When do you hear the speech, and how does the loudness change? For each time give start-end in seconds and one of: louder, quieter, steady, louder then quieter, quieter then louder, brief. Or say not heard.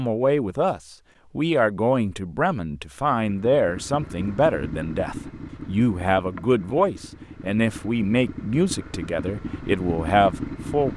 0.0-10.9 steady.